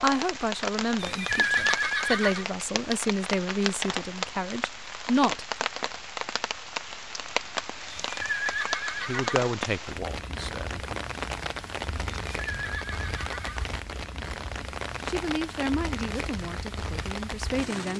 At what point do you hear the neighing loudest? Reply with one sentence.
The volume of the neighing peaks at 2 seconds.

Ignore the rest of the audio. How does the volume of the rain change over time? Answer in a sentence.
The loudness of the rain stays about the same.